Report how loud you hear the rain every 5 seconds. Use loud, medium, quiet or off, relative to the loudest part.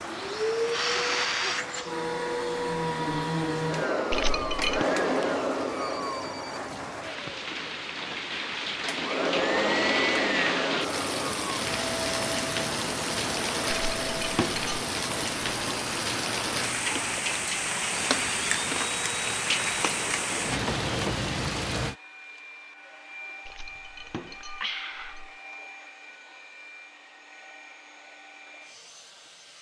medium, medium, loud, loud, loud, off.